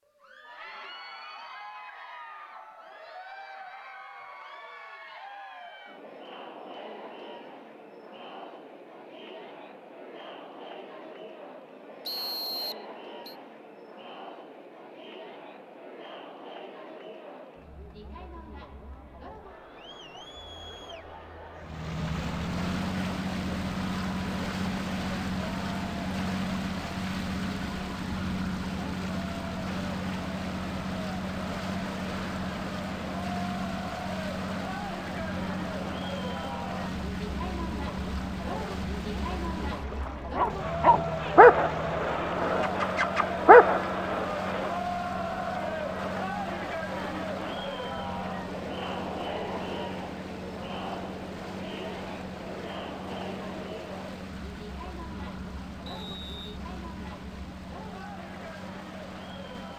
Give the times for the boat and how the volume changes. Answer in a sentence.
The boat can be heard from 21.6 to 59.7 s, getting quieter.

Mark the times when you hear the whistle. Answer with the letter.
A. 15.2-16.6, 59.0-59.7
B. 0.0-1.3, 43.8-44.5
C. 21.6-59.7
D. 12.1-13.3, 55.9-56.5
D.